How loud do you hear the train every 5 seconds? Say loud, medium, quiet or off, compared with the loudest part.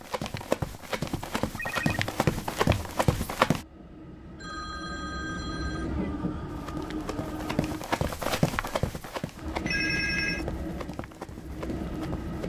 medium, loud, loud.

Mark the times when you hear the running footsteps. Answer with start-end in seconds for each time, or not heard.
0.0-3.6, 6.5-12.4.